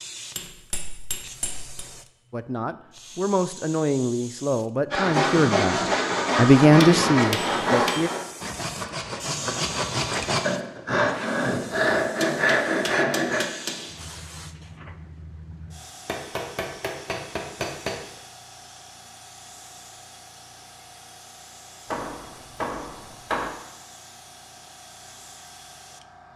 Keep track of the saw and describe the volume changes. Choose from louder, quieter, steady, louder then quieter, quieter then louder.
quieter then louder.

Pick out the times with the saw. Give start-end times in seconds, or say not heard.
4.9-13.4.